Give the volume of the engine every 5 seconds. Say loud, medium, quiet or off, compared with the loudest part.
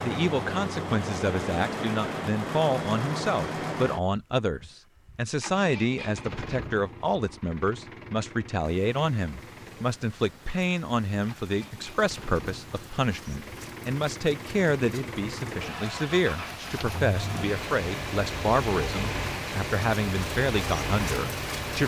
loud, medium, medium, loud, loud.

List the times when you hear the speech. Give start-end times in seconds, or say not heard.
0.0-21.8.